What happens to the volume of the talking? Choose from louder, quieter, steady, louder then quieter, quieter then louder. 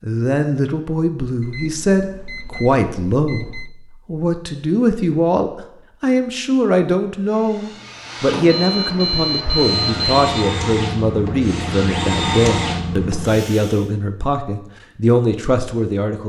steady.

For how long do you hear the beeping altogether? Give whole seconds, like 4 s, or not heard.
4 s.